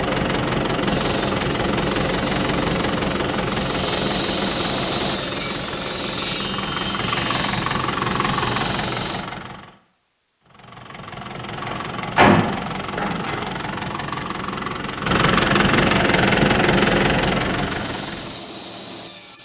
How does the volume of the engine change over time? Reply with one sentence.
The loudness of the engine goes down, then up.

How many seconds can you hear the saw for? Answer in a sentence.
The saw can be heard for 11 seconds in total.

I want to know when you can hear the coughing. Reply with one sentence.
You can't hear the coughing here.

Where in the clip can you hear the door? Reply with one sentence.
The door can be heard from 11.6 to 13.4 s.